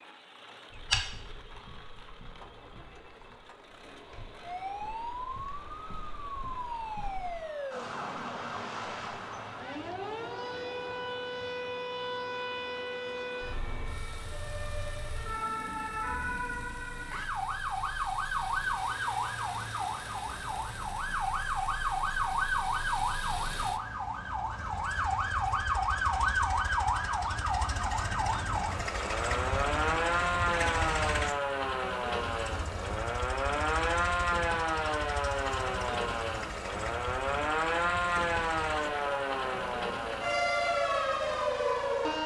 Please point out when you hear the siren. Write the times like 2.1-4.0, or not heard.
4.4-42.2.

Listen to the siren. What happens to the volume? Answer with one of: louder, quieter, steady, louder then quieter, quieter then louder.
louder.